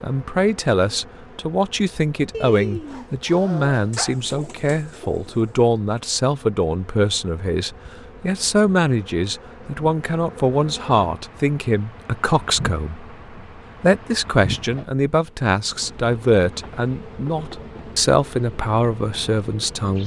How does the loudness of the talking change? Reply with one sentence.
The volume of the talking stays about the same.